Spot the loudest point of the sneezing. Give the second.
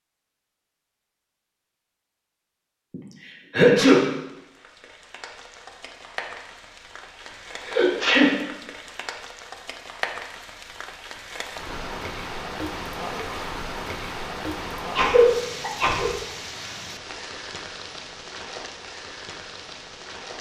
4 s.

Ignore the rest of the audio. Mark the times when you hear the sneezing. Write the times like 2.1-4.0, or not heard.
2.9-4.0, 7.6-8.3, 14.8-16.1.